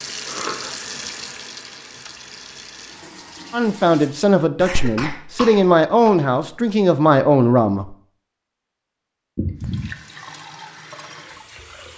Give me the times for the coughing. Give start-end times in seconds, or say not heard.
0.2-0.8, 4.5-6.2, 9.3-9.9.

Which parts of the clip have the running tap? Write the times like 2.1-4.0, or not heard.
0.0-4.2, 9.6-11.9.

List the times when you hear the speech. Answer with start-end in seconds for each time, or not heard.
3.5-8.0.